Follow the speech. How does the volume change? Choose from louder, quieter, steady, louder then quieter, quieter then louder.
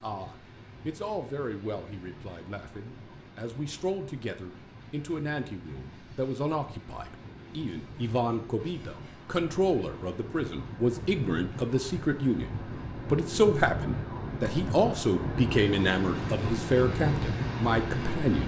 louder.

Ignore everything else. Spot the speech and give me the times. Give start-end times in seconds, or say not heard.
0.0-18.4.